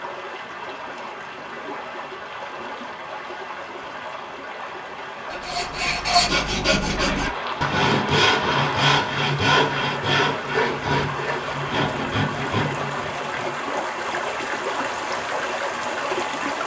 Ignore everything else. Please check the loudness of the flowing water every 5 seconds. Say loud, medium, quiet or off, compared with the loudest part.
medium, medium, loud, loud.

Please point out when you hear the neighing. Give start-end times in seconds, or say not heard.
7.0-8.9.